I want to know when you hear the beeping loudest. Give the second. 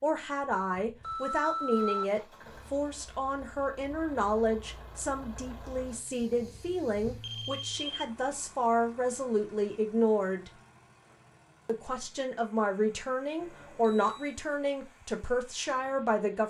2 s.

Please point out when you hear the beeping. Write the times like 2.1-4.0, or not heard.
1.0-2.1, 6.2-8.1, 13.3-14.3.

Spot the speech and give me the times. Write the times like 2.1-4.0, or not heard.
0.0-10.5, 11.7-16.4.